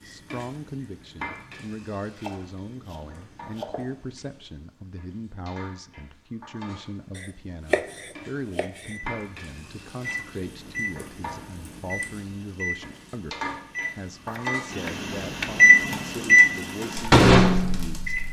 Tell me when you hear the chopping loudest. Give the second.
8 s.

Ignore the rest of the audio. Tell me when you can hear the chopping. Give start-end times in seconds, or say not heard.
2.2-3.9, 7.2-8.9, 13.8-15.5.